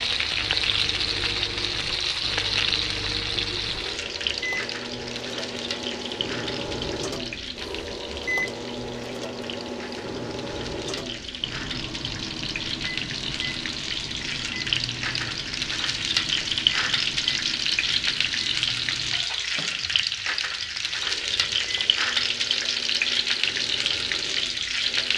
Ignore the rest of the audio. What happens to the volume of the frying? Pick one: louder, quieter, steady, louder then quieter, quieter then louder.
quieter then louder.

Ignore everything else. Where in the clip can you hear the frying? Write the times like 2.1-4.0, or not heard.
0.0-25.1.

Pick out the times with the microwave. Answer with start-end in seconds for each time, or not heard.
0.2-25.1.